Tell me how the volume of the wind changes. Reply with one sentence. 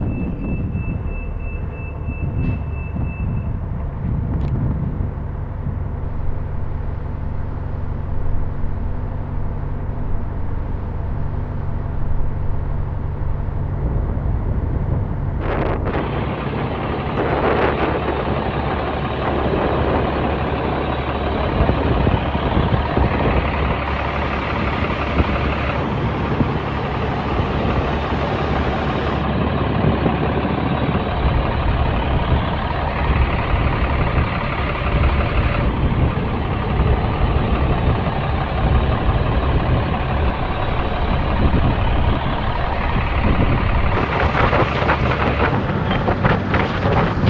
The volume of the wind goes up.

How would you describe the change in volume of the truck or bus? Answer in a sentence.
The volume of the truck or bus goes up.